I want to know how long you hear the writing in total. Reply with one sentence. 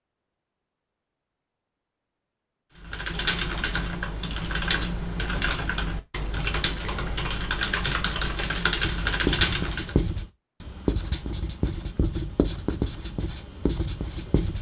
The writing can be heard for 6 seconds in total.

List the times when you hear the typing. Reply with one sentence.
You can hear the typing from 2.8 to 9.9 s.